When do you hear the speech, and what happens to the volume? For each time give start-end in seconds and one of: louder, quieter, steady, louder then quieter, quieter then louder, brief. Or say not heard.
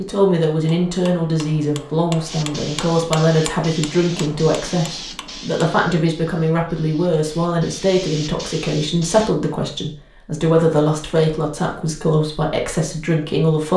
0.0-13.7 steady.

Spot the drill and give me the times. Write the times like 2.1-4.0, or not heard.
not heard.